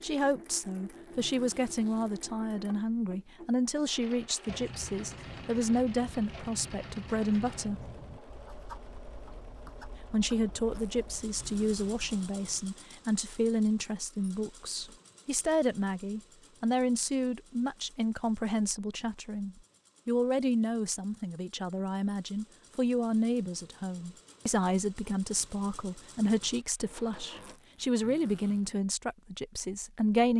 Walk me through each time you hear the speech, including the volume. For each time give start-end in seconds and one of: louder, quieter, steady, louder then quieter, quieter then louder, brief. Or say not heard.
0.0-7.8 steady
10.1-30.3 steady.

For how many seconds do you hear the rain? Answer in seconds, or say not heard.
not heard.